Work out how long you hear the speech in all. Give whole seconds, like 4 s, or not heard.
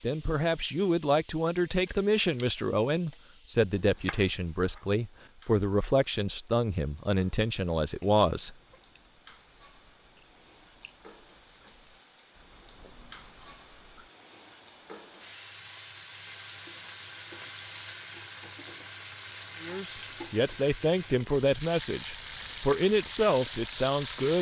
13 s.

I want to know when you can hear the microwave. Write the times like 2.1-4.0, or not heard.
not heard.